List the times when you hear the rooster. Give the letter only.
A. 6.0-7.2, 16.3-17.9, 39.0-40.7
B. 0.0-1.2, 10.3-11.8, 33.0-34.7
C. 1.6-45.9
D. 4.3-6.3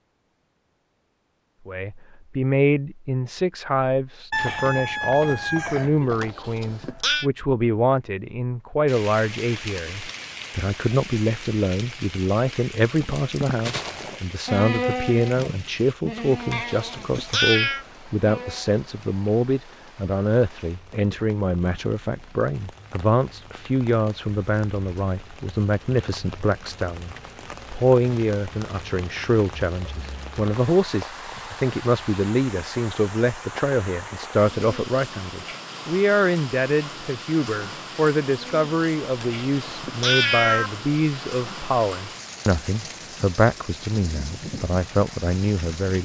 D.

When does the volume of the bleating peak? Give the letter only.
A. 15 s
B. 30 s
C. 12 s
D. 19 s
A.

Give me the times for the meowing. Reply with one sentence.
You can hear the meowing from 6.0 to 7.2 s, from 16.3 to 17.9 s and from 39.0 to 40.7 s.